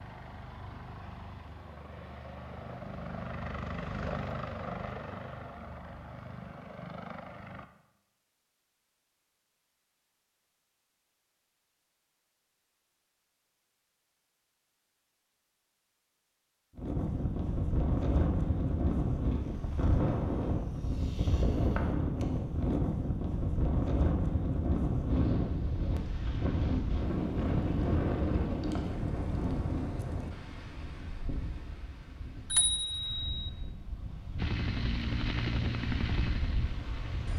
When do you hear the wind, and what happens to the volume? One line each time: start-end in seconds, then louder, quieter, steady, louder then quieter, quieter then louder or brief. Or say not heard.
16.8-37.3 quieter.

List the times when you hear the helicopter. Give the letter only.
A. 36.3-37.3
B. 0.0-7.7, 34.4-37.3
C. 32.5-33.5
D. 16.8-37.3
B.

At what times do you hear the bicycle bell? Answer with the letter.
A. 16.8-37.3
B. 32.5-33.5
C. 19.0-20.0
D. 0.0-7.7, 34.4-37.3
B.